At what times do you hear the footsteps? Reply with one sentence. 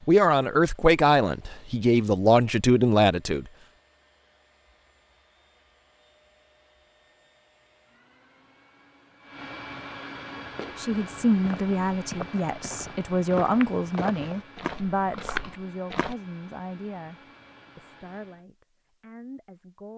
You can hear the footsteps from 10.4 to 16.1 s.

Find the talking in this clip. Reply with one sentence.
You can hear the talking from 0.1 to 3.5 s and from 10.8 to 19.9 s.